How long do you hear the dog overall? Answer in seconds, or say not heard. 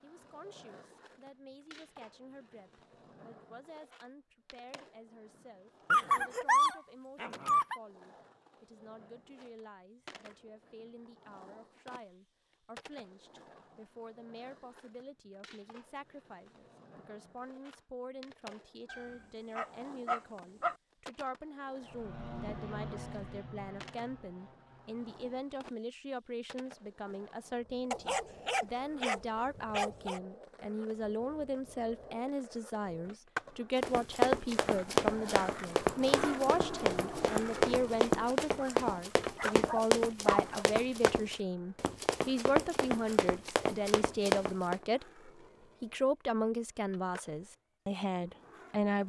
8 s.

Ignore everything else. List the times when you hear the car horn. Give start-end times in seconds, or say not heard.
not heard.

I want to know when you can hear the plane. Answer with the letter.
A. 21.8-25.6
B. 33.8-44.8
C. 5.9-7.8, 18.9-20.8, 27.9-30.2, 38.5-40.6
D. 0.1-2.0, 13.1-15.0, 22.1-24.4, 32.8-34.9
A.